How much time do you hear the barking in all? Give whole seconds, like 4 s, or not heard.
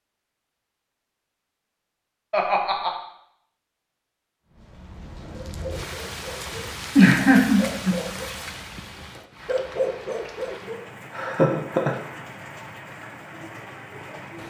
4 s.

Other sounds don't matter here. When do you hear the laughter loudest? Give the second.
7 s.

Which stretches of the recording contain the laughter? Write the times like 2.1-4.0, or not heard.
2.3-2.9, 7.0-8.0, 11.2-11.9.